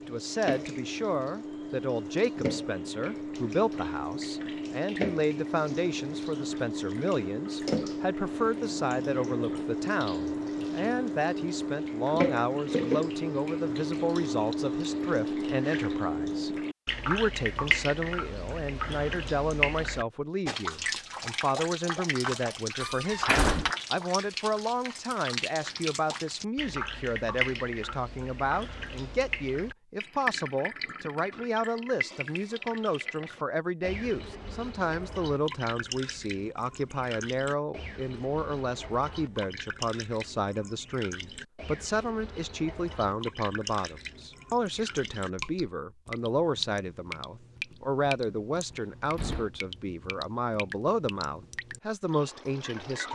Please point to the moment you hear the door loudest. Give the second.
23 s.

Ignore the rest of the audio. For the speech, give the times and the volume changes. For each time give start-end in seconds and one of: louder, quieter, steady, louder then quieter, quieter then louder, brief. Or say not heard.
0.1-53.1 steady.